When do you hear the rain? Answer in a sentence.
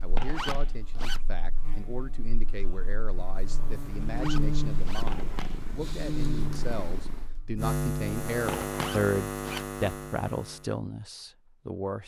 The rain can't be heard in this clip.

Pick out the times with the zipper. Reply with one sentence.
You can hear the zipper from 0.2 to 1.2 s, from 4.2 to 5.0 s and from 8.7 to 9.7 s.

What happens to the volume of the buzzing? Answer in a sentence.
The volume of the buzzing goes up.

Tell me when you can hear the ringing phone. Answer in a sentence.
You can hear the ringing phone from 0.1 to 1.2 s, from 5.0 to 5.7 s and from 8.4 to 9.7 s.